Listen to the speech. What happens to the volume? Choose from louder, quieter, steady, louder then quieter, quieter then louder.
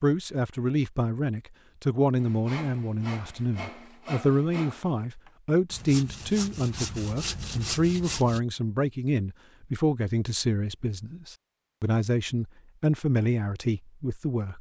steady.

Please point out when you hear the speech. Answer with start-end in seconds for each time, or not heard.
0.0-14.5.